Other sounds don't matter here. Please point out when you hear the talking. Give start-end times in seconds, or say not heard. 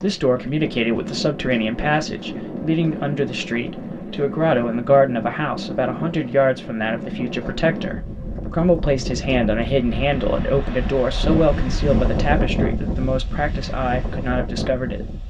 0.0-15.2.